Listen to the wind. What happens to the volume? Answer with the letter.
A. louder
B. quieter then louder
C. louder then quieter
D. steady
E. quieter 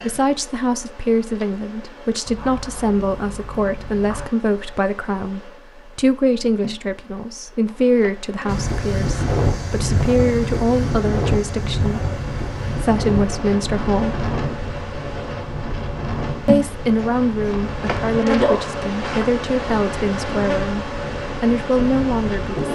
E.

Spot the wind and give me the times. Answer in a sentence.
The wind can be heard from 8.4 to 22.7 s.